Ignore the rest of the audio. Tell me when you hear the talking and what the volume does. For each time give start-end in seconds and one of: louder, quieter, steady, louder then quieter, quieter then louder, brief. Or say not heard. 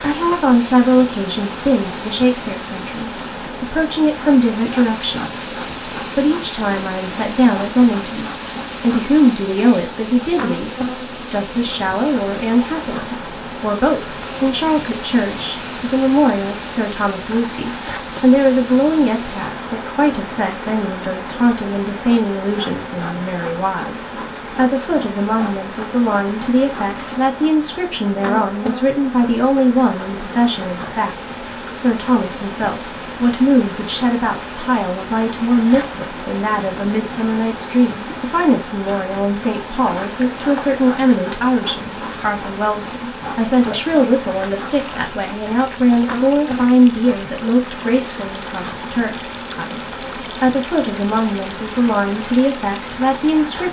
0.0-53.6 steady.